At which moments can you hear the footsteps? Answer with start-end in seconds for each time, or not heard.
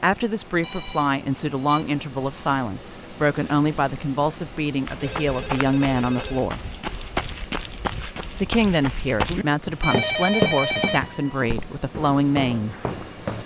4.8-13.4.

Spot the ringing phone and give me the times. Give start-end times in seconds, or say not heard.
0.6-1.9, 4.8-6.5, 9.8-11.6.